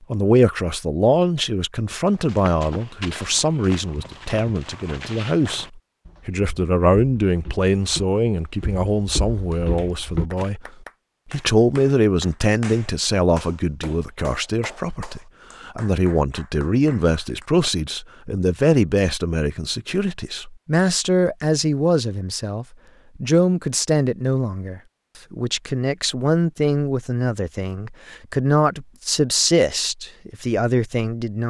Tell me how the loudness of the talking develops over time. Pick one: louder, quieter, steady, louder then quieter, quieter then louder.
steady.